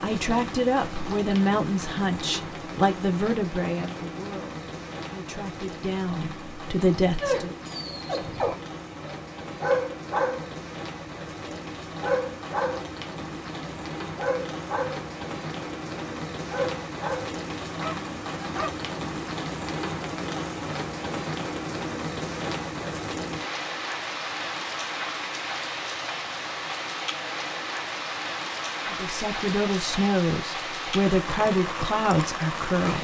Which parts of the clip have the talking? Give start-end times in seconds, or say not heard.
0.0-7.5, 28.9-32.9.